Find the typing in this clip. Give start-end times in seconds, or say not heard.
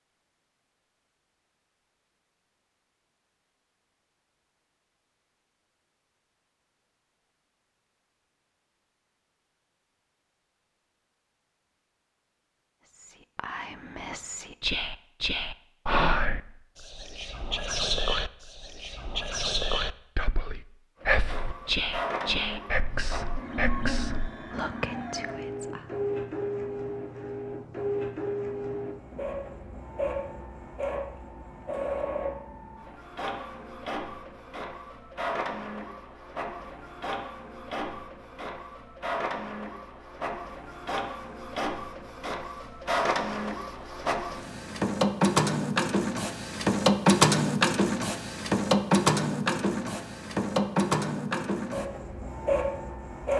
not heard.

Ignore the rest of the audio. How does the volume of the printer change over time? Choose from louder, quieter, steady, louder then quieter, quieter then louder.
louder.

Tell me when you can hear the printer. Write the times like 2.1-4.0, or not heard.
21.0-53.3.